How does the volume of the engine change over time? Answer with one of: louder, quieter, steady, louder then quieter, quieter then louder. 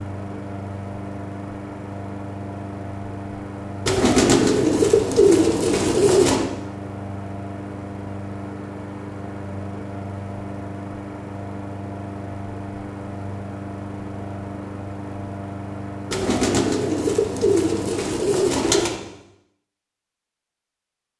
steady.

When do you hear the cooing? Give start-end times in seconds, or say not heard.
3.9-6.5, 16.1-19.0.